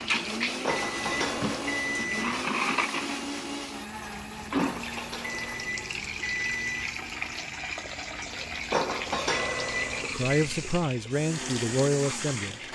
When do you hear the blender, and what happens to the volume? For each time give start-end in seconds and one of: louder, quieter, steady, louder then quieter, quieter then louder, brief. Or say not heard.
0.0-12.6 quieter then louder.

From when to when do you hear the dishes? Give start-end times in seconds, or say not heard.
0.6-2.0, 4.5-6.0, 8.7-10.1.